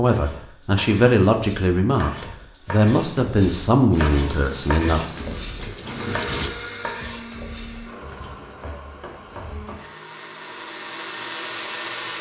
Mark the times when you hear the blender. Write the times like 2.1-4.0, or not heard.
5.8-12.1.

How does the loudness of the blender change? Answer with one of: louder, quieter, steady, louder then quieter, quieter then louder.
quieter then louder.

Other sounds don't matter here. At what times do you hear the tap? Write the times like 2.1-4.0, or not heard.
4.0-6.5.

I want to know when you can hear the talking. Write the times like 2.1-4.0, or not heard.
0.0-5.0.